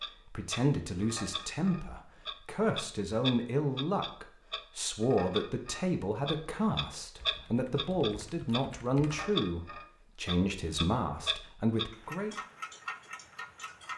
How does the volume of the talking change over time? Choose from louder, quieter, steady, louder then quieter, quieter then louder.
steady.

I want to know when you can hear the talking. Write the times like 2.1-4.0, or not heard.
0.2-12.3.